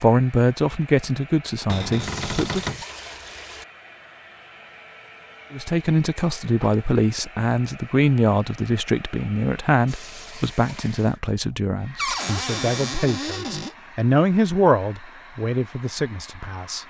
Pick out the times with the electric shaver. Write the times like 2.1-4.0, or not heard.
not heard.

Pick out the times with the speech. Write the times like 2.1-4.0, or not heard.
0.0-2.8, 5.5-16.8.